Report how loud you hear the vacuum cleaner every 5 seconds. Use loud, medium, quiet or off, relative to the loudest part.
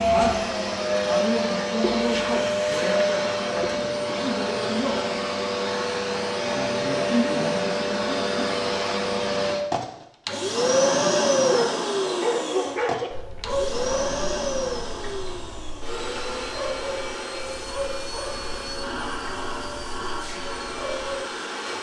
loud, loud, loud, medium, medium.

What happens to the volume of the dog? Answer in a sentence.
The volume of the dog goes down.